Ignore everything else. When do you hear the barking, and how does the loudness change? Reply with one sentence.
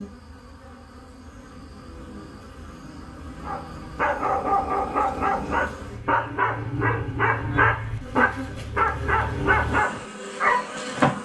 You can hear the barking from 3.4 to 10.8 s, at a steady volume.